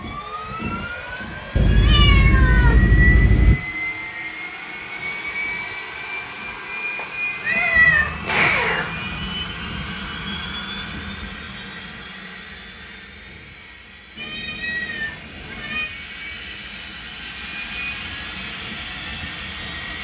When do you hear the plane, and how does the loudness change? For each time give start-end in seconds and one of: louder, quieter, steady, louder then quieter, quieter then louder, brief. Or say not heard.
0.0-19.9 quieter then louder.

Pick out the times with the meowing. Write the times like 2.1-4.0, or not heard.
1.6-3.5, 7.0-9.5, 14.2-15.8.